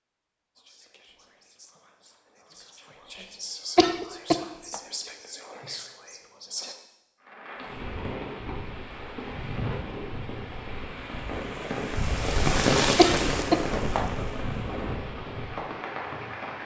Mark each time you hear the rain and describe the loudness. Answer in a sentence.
The rain can be heard from 7.2 to 16.6 s, getting louder then quieter.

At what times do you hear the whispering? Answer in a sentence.
You can hear the whispering from 0.6 to 6.8 s.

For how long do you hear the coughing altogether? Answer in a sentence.
The coughing can be heard for 2 seconds in total.